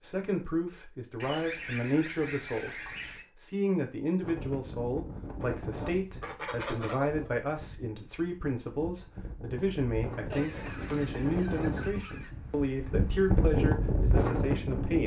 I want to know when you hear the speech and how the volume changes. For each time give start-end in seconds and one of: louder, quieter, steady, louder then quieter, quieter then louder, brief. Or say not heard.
0.0-15.0 steady.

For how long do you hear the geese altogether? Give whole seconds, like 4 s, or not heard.
6 s.